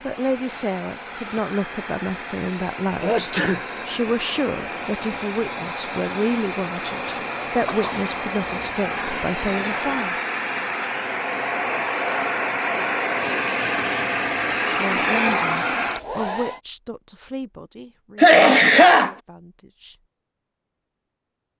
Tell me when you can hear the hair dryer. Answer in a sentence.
The hair dryer can be heard from 0.0 to 16.6 s.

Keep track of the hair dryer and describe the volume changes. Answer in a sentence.
The volume of the hair dryer goes up.